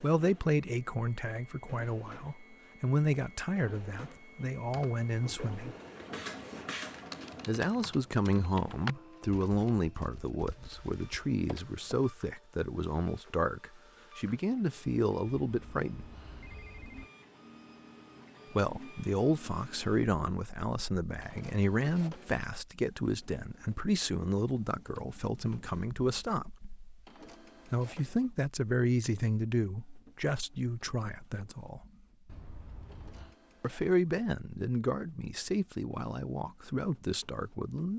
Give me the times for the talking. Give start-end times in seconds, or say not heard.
0.0-5.8, 7.5-16.1, 18.5-26.6, 27.7-31.9, 33.6-37.9.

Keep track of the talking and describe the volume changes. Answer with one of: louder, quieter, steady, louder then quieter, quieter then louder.
steady.